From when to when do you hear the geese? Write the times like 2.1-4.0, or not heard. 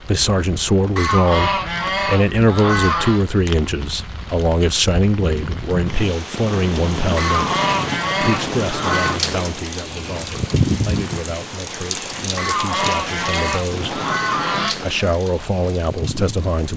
0.9-3.2, 7.2-9.2, 12.3-15.2.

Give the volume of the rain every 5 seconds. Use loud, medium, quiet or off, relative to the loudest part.
medium, loud, loud, medium.